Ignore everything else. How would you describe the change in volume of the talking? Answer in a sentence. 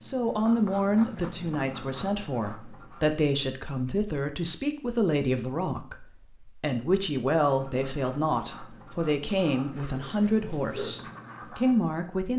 The loudness of the talking stays about the same.